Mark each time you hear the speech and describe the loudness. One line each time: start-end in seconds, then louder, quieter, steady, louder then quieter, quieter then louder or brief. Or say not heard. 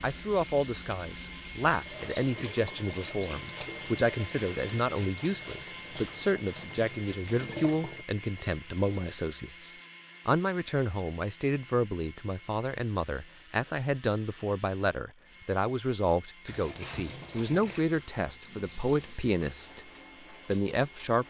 0.0-19.8 steady
20.4-21.2 brief.